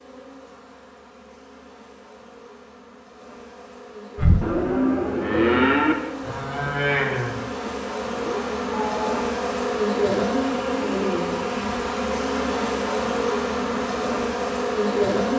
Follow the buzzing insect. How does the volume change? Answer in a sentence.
The loudness of the buzzing insect goes up.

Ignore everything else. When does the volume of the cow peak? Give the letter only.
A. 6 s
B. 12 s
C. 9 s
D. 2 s
A.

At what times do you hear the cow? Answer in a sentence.
You can hear the cow from 4.2 to 9.3 s.